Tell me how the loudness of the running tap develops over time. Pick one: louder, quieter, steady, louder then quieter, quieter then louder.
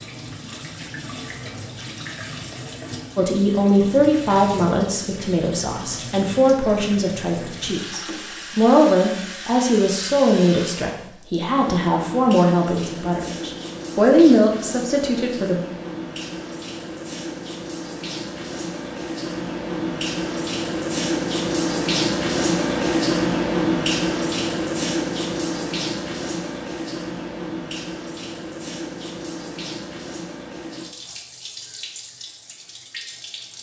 louder then quieter.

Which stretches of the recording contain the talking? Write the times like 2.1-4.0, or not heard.
3.1-15.6.